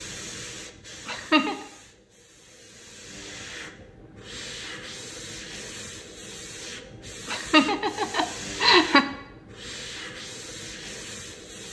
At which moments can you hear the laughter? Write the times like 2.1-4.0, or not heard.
1.1-1.6, 7.2-9.1.